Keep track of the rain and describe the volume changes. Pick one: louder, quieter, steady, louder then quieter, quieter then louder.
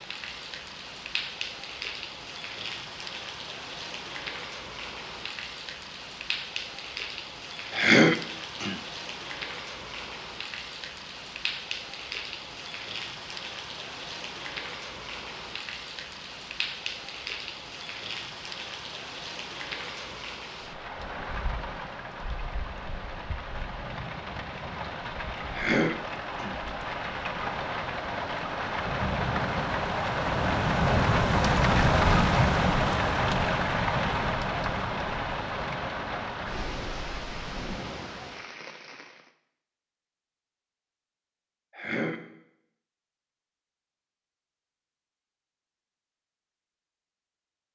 louder.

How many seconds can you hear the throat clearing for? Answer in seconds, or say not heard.
3 s.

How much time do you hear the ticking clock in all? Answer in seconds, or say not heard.
not heard.